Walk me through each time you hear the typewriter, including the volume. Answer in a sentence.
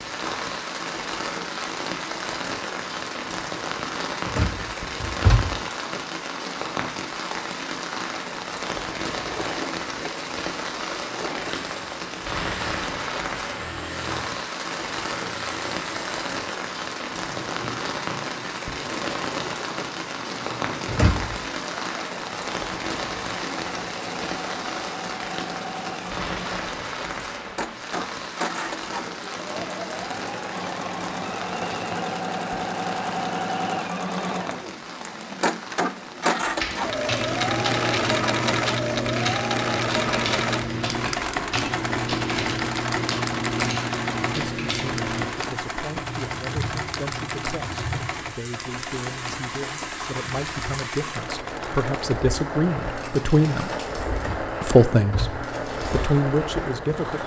The typewriter can be heard from 36.5 to 45.3 s, at a steady volume.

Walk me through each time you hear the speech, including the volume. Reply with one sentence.
The speech can be heard from 44.3 to 53.7 s, getting louder; and briefly from 54.6 to 57.2 s.